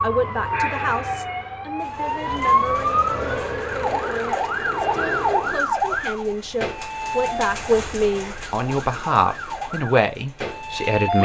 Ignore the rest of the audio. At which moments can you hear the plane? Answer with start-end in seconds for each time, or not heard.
1.9-5.7.